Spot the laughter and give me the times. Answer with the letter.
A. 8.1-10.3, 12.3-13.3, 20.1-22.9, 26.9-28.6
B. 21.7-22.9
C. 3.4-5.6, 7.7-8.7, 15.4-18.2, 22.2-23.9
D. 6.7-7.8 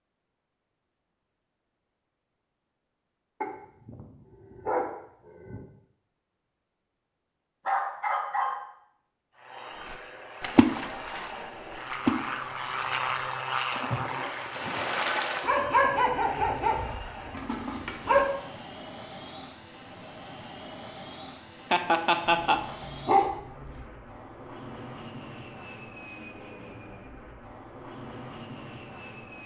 B.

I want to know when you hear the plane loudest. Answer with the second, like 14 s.
13 s.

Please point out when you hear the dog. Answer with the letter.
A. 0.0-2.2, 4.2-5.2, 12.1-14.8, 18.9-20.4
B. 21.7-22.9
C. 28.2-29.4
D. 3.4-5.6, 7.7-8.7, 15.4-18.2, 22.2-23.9
D.